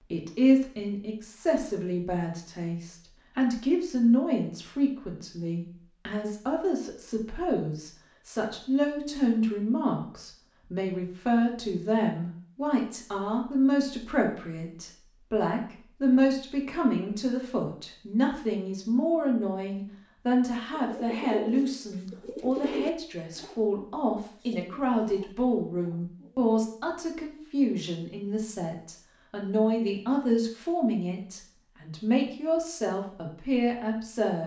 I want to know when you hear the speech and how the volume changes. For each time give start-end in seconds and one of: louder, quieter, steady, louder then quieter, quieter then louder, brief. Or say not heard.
0.1-34.4 steady.